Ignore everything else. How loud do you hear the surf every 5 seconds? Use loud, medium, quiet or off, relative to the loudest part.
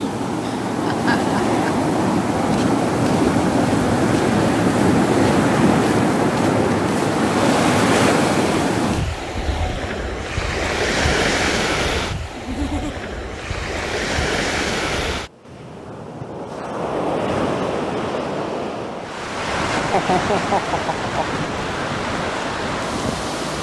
loud, loud, medium, medium, medium.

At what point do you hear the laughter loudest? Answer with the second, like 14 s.
20 s.